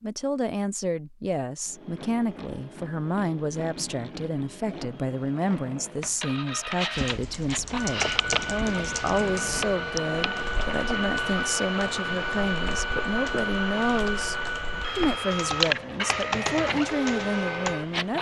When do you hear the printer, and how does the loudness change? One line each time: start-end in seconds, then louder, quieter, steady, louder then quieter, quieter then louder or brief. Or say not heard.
1.6-18.1 louder.